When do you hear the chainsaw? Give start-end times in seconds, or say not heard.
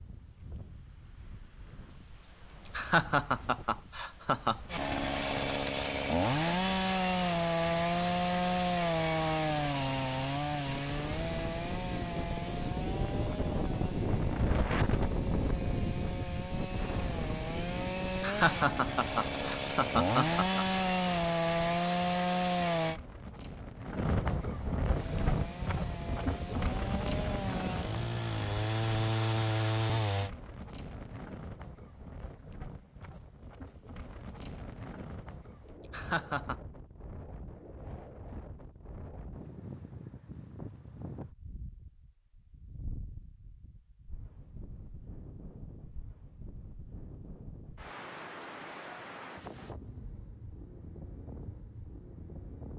4.7-23.0, 24.9-30.3.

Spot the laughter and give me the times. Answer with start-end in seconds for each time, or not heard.
2.5-4.6, 18.1-20.6, 35.6-36.5.